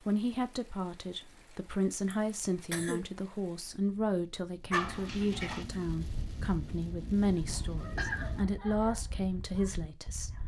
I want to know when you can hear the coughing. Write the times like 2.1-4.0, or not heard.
2.1-3.0, 7.3-8.3.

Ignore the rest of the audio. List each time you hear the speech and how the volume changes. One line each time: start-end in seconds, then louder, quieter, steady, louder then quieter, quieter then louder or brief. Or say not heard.
0.1-10.4 steady.